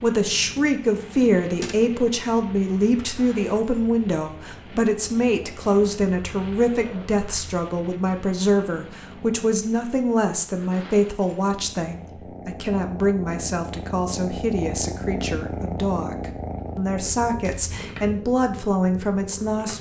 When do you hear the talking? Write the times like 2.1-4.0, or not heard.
0.0-19.7.